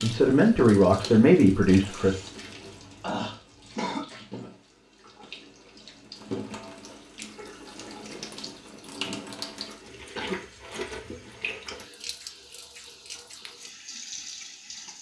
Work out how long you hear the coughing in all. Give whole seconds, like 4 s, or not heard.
3 s.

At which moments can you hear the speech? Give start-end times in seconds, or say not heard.
0.0-2.1.